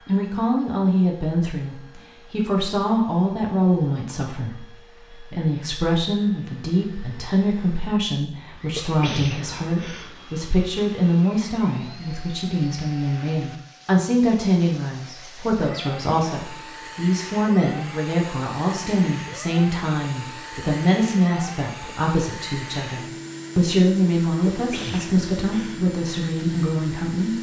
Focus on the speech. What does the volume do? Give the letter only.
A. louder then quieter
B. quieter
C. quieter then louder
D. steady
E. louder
D.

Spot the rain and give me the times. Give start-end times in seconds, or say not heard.
not heard.